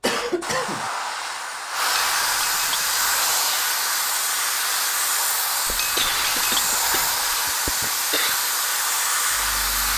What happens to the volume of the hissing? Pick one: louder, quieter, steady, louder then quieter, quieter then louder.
steady.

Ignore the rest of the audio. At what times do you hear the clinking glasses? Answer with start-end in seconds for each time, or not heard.
1.9-3.3, 5.8-7.2.